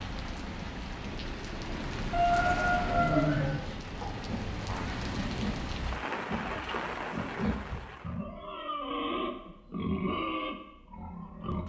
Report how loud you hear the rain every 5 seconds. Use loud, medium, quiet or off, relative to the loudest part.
loud, loud, off.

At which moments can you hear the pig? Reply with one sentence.
You can hear the pig from 4.2 to 11.6 s.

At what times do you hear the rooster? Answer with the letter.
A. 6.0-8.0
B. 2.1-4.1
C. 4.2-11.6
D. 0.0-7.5
B.